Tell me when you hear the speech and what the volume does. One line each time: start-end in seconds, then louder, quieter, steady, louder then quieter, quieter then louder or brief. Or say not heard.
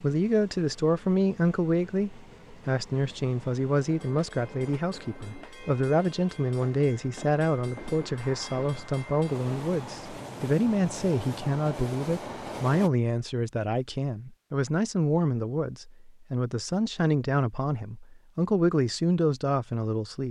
0.0-20.2 steady.